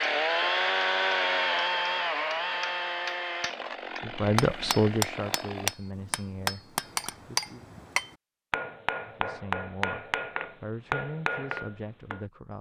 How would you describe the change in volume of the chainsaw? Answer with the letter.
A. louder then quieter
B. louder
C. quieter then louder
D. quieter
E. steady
D.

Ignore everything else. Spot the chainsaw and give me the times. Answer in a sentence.
You can hear the chainsaw from 0.0 to 5.8 s.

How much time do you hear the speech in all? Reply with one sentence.
You can hear the speech for 7 seconds altogether.